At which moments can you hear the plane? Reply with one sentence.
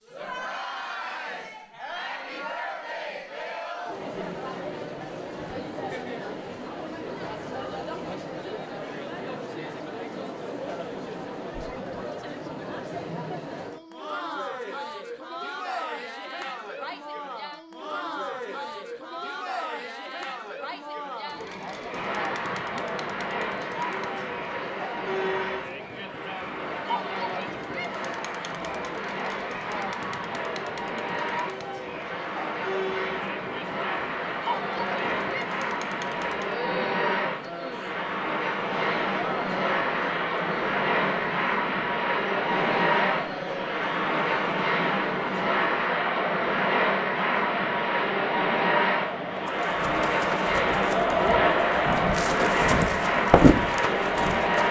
The plane can be heard from 21.9 to 54.6 s.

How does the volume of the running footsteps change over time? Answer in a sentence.
The loudness of the running footsteps goes up.